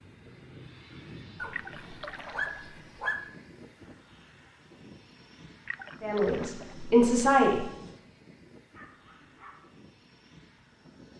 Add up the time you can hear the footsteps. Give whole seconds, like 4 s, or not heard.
not heard.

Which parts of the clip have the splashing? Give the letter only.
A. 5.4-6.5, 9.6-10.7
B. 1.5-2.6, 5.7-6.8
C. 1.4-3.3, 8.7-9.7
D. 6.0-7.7
B.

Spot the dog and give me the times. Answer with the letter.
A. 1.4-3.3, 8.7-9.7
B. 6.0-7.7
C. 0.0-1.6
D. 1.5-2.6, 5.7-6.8
A.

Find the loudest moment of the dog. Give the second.
3 s.